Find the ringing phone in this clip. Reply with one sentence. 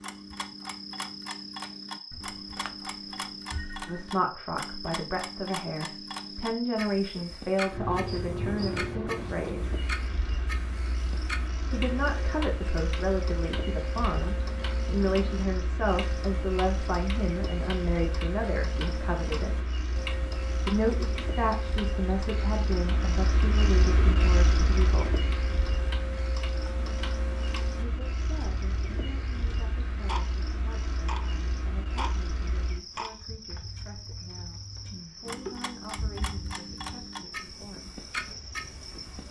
You can hear the ringing phone from 2.1 to 4.0 s.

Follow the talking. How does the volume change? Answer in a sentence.
The loudness of the talking goes down.